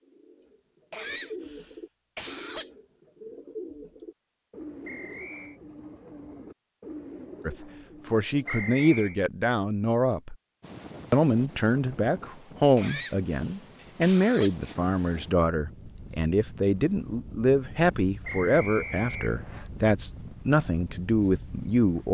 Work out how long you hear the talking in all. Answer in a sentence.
The talking can be heard for 14 seconds in total.